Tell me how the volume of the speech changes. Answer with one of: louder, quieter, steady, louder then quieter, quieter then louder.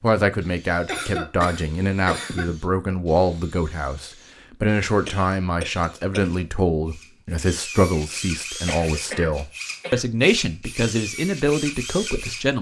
steady.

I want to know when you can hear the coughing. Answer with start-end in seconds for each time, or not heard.
0.8-2.5, 5.0-6.5, 8.7-10.1.